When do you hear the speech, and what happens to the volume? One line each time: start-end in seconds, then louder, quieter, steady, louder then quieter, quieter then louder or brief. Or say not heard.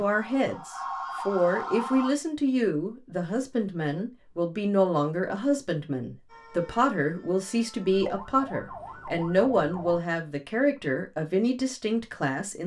0.0-12.6 steady.